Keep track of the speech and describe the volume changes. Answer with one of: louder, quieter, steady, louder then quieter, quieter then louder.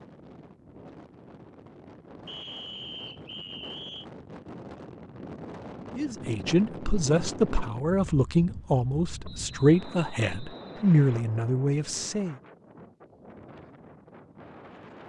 steady.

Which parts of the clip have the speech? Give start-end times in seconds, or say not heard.
6.0-12.3.